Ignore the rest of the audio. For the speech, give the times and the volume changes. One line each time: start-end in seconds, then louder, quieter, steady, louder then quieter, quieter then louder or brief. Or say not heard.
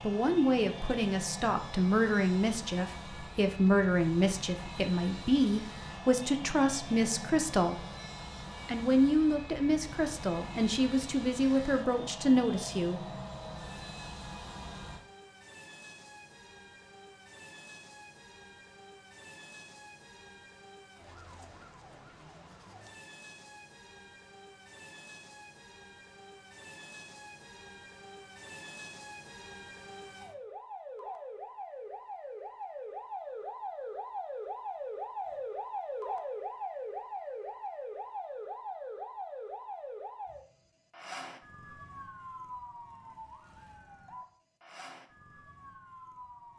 0.0-7.8 steady
8.7-13.0 quieter then louder.